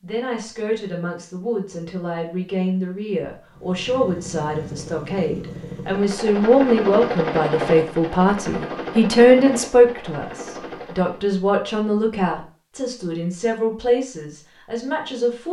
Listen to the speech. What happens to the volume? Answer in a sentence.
The volume of the speech goes up, then down.